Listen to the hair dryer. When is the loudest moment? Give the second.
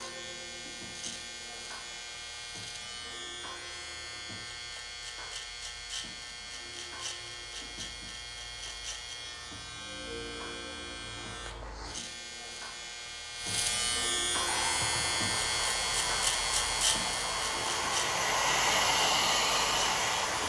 19 s.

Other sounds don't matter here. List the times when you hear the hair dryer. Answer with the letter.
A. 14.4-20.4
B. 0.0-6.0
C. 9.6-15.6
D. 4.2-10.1
A.